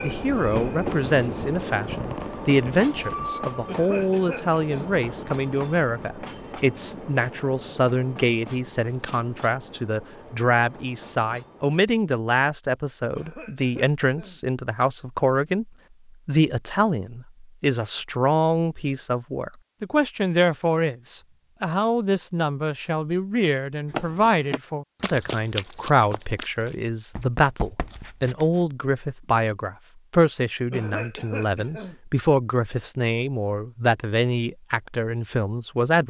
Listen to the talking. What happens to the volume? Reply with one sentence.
The volume of the talking stays about the same.